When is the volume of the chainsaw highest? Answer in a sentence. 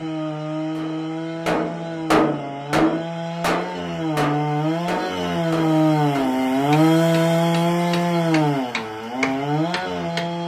The volume of the chainsaw peaks at 7 seconds.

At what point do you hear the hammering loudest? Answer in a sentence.
The loudest moment of the hammering is at 2 seconds.